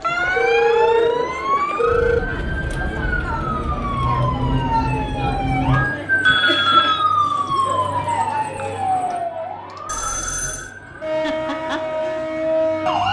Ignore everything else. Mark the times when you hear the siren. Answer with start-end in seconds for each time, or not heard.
0.0-13.0.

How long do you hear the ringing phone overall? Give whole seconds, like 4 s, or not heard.
4 s.